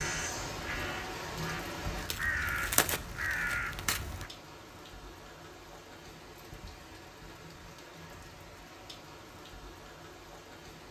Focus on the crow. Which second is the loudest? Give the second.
3 s.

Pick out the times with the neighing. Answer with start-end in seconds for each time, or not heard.
not heard.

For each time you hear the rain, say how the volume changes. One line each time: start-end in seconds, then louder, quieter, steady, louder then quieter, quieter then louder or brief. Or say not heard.
0.0-10.8 quieter.